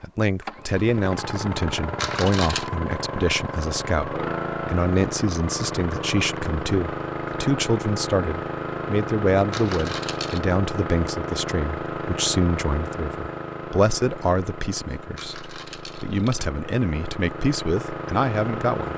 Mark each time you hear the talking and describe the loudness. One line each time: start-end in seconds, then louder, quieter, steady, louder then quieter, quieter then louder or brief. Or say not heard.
0.0-18.9 steady.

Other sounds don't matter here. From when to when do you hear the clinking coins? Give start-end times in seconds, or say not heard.
1.9-2.7, 9.5-10.4, 15.2-16.4.